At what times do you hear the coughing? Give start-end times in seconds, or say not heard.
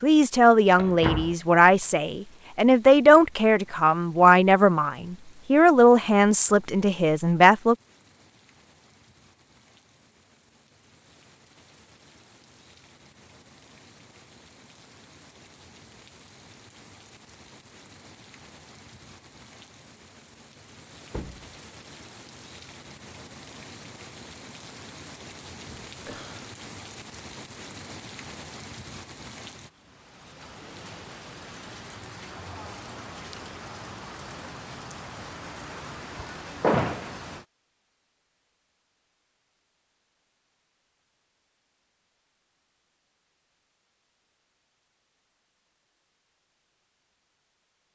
25.6-26.5.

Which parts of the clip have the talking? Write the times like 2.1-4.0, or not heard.
0.0-7.8.